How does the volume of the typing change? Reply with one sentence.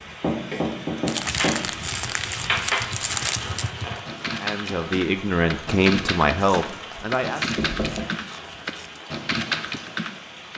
The volume of the typing goes up.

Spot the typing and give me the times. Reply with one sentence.
You can hear the typing from 1.9 to 10.5 s.